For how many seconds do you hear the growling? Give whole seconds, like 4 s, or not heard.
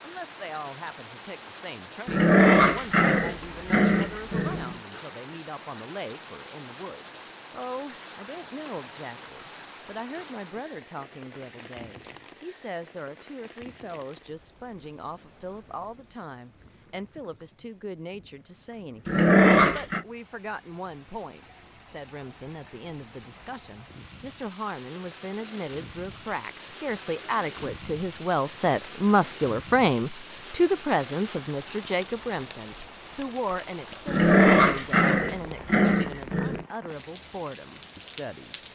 6 s.